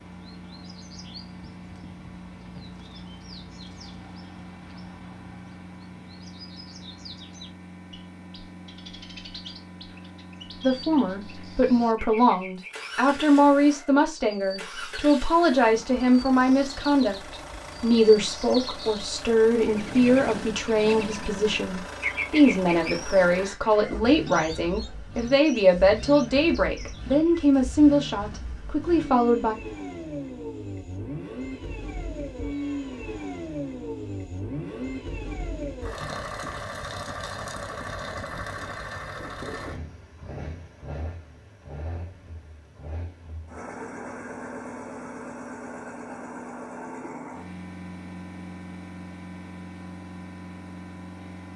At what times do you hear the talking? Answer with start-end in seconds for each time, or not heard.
10.6-29.6.